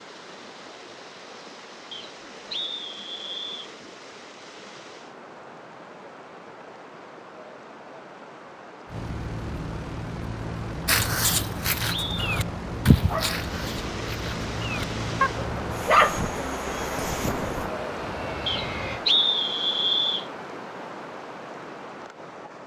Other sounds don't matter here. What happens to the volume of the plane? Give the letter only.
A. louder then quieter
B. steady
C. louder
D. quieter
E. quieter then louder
B.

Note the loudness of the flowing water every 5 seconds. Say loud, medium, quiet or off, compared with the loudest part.
medium, medium, medium, loud, medium.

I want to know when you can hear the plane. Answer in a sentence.
The plane can be heard from 8.8 to 19.1 s.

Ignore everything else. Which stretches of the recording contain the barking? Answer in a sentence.
You can hear the barking from 10.8 to 16.3 s.